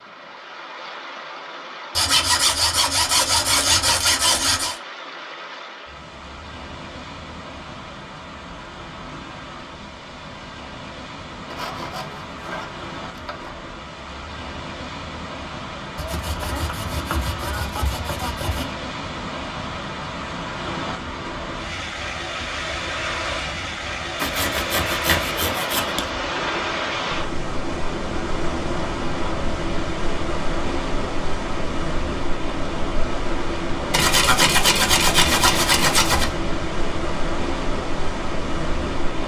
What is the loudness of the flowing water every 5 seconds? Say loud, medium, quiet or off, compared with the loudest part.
medium, medium, medium, medium, loud, loud, loud, loud.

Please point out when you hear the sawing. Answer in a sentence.
You can hear the sawing from 1.9 to 4.8 s, from 11.5 to 13.5 s, from 15.9 to 18.7 s, from 24.1 to 26.1 s and from 33.9 to 36.3 s.